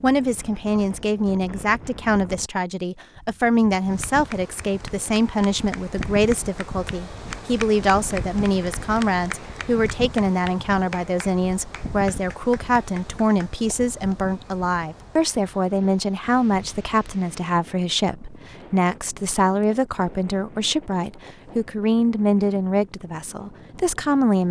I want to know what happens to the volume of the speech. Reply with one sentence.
The volume of the speech stays about the same.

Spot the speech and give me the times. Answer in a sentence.
You can hear the speech from 0.0 to 24.4 s.